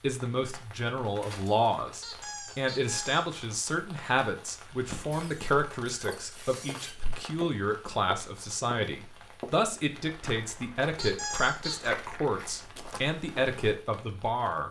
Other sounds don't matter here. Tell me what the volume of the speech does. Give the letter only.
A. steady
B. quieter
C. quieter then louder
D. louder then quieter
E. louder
A.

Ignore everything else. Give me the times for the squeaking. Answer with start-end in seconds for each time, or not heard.
2.0-3.2, 5.1-7.0, 10.9-11.9.